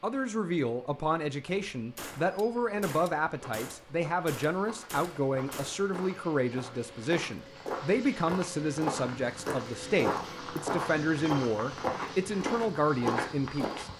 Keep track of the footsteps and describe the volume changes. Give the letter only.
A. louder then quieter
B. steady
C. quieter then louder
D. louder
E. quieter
D.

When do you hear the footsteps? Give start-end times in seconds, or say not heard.
2.1-13.9.